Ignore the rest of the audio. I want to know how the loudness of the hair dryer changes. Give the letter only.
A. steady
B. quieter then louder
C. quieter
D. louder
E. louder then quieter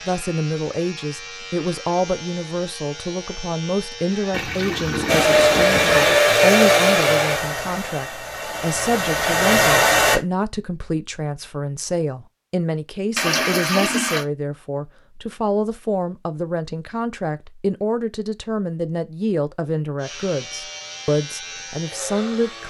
B.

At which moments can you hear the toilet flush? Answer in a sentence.
The toilet flush can be heard from 4.3 to 6.2 s and from 13.2 to 14.2 s.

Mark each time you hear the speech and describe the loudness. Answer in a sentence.
You can hear the speech from 0.1 to 22.6 s, at a steady volume.